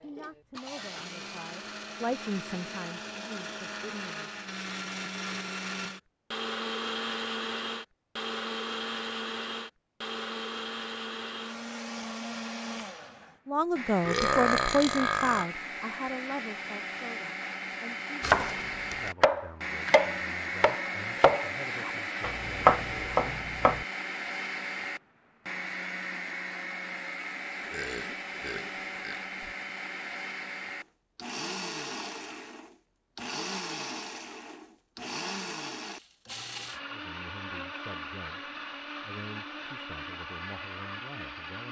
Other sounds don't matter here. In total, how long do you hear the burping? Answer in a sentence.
The burping can be heard for 3 seconds in total.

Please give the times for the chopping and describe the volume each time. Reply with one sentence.
You can hear the chopping from 18.2 to 23.9 s, getting quieter then louder.